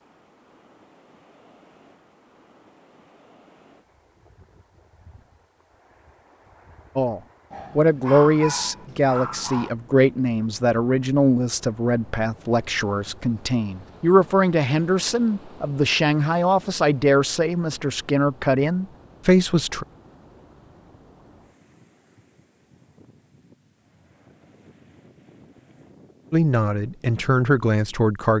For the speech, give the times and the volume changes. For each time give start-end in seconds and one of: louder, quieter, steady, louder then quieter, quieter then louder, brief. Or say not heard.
7.0-19.9 steady
26.3-28.3 brief.